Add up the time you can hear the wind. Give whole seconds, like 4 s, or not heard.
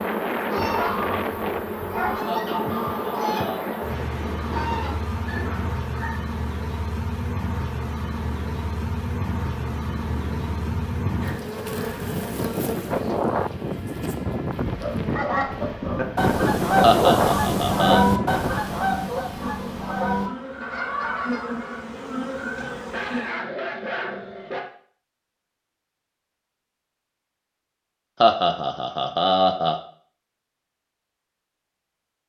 19 s.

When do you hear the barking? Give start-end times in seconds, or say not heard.
0.6-2.1, 14.7-16.1, 22.6-24.6.